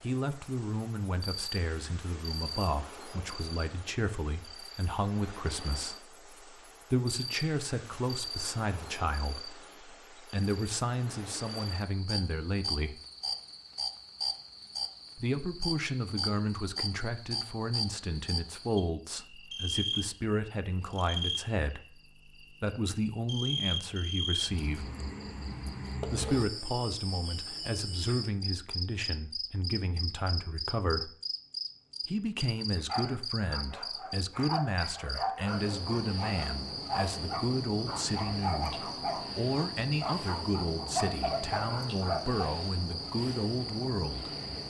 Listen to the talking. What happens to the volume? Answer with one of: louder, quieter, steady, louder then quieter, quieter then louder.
steady.